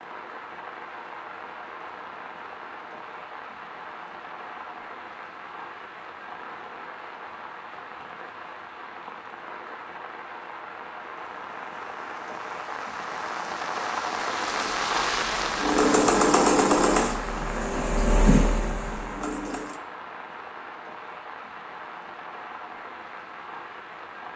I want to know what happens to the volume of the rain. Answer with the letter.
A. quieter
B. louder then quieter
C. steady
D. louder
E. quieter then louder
B.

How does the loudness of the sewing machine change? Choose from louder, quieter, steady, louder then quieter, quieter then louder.
louder then quieter.